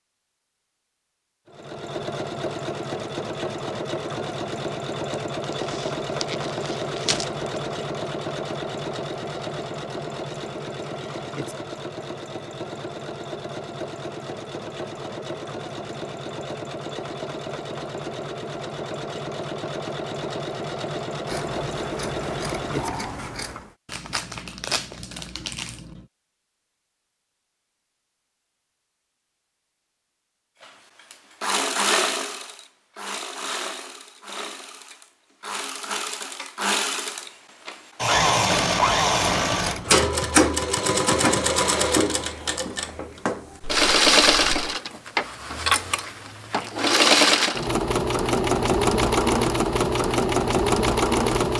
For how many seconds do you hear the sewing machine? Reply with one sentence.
You can hear the sewing machine for 42 seconds altogether.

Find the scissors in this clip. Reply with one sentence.
You can hear the scissors from 21.2 to 23.8 s and from 38.7 to 39.9 s.